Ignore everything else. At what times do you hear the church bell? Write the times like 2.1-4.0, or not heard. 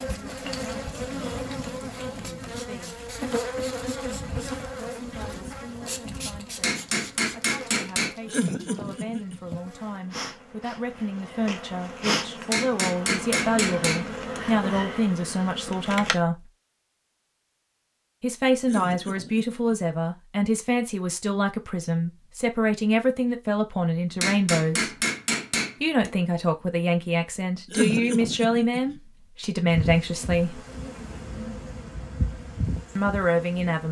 not heard.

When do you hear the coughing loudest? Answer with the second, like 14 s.
28 s.